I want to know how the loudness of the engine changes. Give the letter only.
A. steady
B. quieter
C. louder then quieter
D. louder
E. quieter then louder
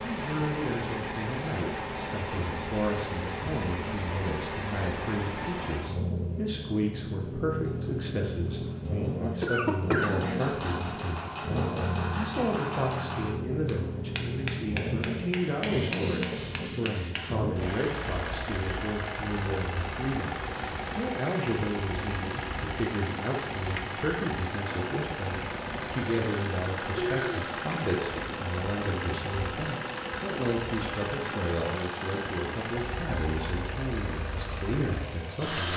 A.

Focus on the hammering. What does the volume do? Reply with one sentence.
The loudness of the hammering goes up.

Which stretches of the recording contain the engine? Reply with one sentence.
You can hear the engine from 0.0 to 35.7 s.